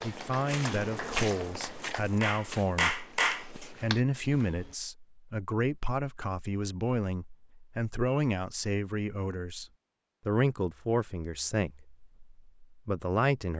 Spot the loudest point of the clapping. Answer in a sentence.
The loudest moment of the clapping is at 3 seconds.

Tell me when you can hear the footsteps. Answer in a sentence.
The footsteps can be heard from 0.0 to 4.8 s.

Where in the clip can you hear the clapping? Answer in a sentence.
You can hear the clapping from 0.0 to 4.0 s.